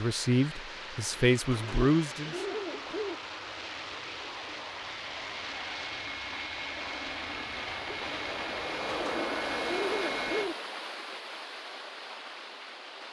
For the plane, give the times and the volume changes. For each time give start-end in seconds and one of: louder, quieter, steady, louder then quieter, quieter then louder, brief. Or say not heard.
0.0-10.4 louder.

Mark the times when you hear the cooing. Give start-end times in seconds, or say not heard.
1.5-3.1, 8.8-10.6.